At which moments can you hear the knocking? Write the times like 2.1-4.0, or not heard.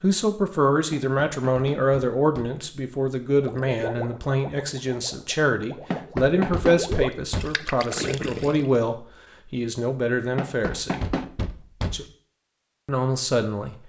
0.9-2.6, 5.9-7.6, 10.3-12.1.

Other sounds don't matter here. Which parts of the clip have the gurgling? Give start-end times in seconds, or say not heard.
3.4-8.8.